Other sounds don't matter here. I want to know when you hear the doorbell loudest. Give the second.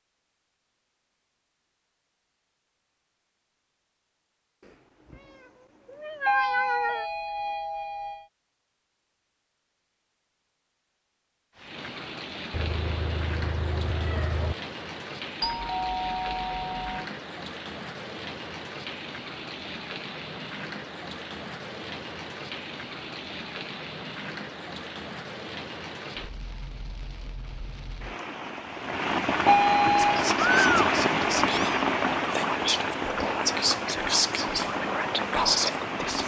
30 s.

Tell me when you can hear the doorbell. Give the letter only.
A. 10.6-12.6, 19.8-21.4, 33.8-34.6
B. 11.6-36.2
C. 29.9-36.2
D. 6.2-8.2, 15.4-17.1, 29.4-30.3
D.